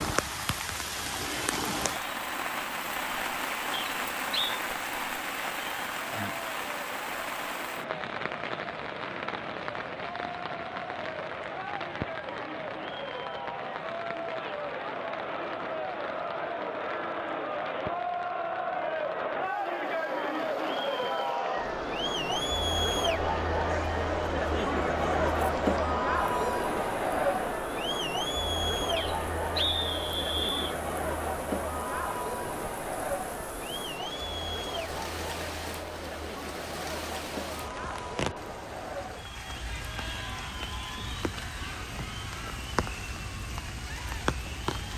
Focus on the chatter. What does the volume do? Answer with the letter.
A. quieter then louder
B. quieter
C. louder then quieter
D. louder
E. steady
C.